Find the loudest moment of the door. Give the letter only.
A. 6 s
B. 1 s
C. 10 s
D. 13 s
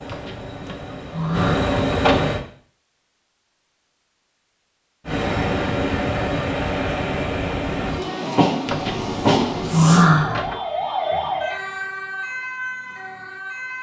C.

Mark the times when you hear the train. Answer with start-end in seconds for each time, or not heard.
0.0-2.4, 5.0-10.1.